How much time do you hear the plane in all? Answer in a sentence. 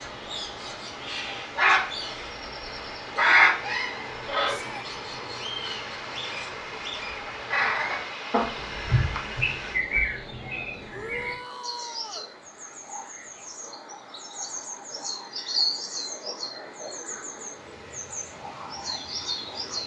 The plane can be heard for 10 seconds in total.